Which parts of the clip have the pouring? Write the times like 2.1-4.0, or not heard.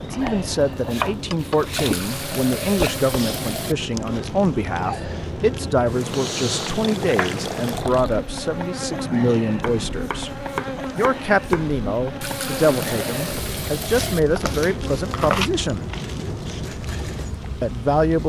1.7-3.8, 6.7-8.2, 12.2-14.2.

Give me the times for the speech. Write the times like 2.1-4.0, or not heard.
0.0-10.3, 10.9-15.8, 17.6-18.2.